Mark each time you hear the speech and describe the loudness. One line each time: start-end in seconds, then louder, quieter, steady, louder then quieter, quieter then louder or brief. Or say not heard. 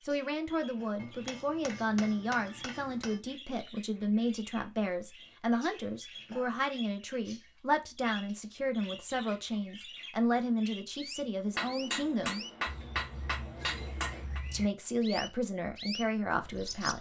0.0-12.4 steady
14.5-16.9 brief.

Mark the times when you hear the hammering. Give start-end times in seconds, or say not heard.
1.0-3.2, 11.6-14.4.